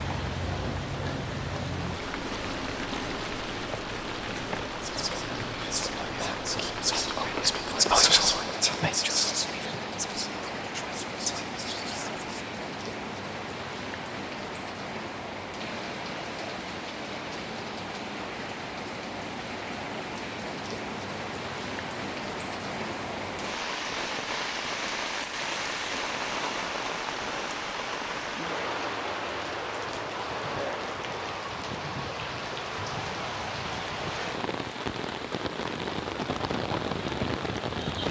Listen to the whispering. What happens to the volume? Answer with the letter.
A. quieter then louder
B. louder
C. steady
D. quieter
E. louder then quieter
E.